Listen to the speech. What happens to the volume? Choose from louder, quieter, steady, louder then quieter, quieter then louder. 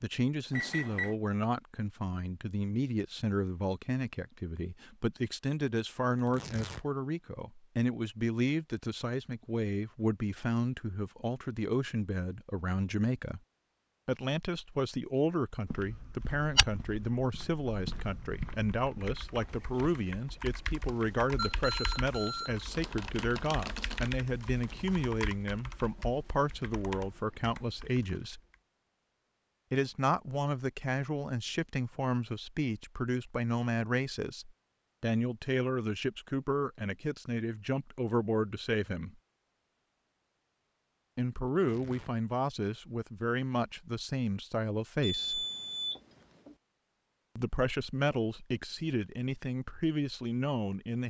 steady.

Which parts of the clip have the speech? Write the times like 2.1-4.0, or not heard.
0.0-13.4, 14.1-28.4, 29.7-39.1, 41.1-45.5, 47.4-51.0.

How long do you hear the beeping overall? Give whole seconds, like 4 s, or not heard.
5 s.